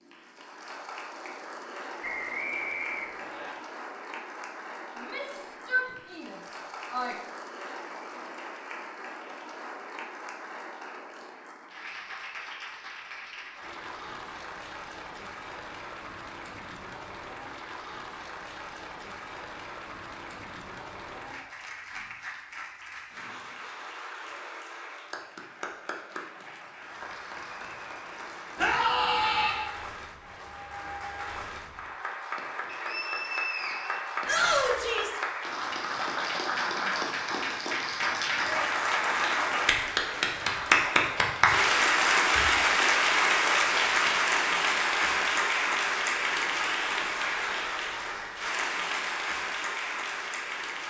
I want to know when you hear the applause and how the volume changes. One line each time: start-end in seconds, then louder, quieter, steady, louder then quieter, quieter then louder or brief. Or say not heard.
0.0-50.8 louder.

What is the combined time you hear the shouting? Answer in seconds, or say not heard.
4 s.